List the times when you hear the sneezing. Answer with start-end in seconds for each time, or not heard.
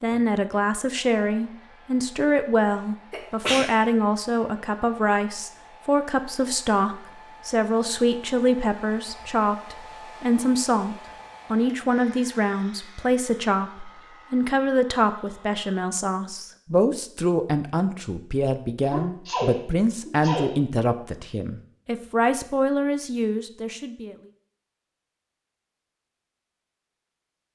3.1-3.7, 18.9-20.6.